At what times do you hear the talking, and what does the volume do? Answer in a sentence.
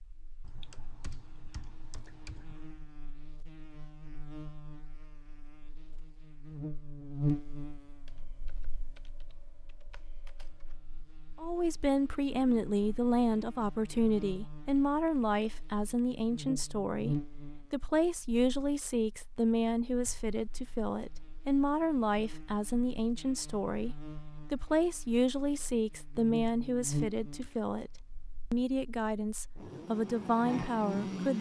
The talking can be heard from 11.4 to 31.3 s, at a steady volume.